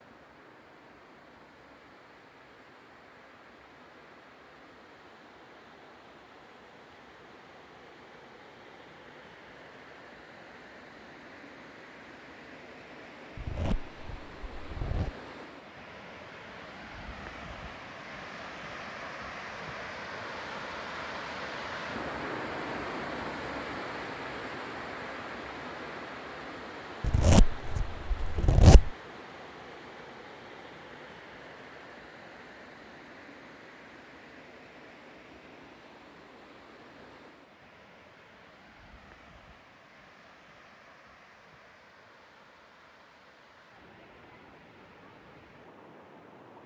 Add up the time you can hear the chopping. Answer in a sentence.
The chopping can't be heard in this clip.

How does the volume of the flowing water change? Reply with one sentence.
The volume of the flowing water goes up, then down.